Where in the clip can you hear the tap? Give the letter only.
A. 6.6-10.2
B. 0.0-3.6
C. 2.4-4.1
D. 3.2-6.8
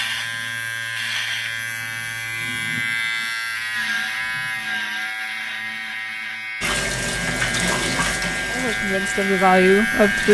A.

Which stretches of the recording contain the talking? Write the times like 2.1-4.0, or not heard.
8.5-10.2.